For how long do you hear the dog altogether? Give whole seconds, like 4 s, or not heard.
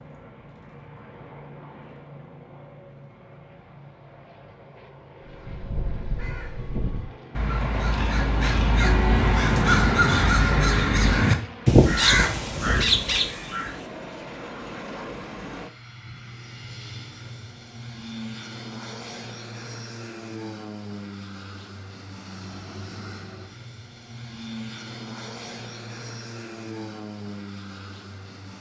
not heard.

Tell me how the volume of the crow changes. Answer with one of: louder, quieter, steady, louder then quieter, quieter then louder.
louder.